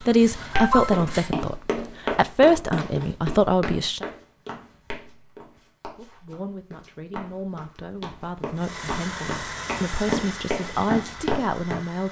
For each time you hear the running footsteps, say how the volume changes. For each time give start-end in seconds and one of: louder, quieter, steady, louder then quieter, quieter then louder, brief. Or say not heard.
0.6-11.8 quieter then louder.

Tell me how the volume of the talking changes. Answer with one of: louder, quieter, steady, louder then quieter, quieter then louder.
quieter then louder.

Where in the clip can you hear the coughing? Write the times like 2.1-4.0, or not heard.
0.5-1.2.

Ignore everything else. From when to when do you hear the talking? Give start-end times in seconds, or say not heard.
0.0-4.0, 6.0-12.0.